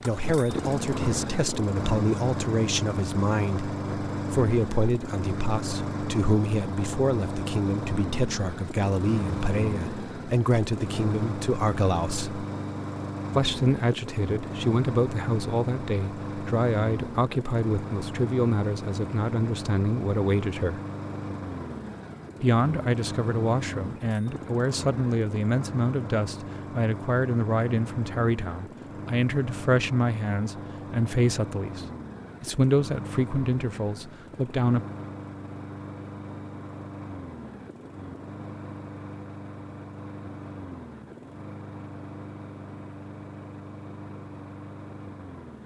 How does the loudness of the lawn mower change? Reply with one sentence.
The volume of the lawn mower goes down.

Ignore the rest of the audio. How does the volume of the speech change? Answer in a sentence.
The volume of the speech stays about the same.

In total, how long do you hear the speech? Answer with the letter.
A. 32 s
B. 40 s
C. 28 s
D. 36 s
A.